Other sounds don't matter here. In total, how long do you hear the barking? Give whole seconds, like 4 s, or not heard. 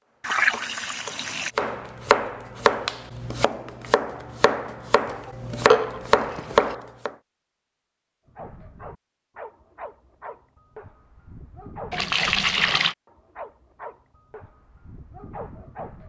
8 s.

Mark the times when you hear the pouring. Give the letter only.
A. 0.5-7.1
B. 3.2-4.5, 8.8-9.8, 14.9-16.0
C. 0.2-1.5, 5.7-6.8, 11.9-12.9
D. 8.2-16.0
C.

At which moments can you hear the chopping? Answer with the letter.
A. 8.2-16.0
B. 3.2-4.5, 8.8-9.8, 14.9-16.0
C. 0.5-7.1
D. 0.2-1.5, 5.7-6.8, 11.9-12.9
C.